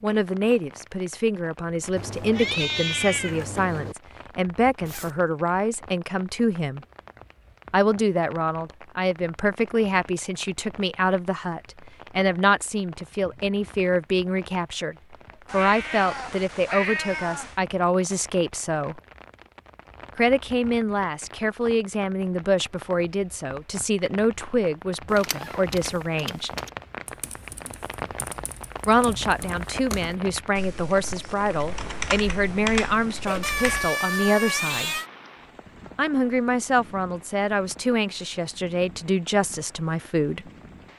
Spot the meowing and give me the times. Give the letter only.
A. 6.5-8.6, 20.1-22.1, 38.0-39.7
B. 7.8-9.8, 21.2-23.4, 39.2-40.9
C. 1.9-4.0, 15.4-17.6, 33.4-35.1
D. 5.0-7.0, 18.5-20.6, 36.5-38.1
C.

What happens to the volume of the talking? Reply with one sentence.
The volume of the talking stays about the same.